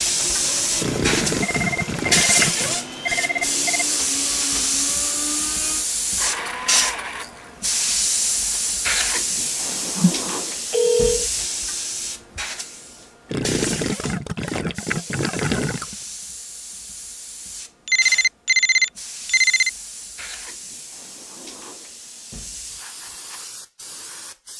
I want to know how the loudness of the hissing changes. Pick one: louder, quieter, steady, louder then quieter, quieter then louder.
quieter.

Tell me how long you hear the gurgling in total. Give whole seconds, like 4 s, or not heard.
5 s.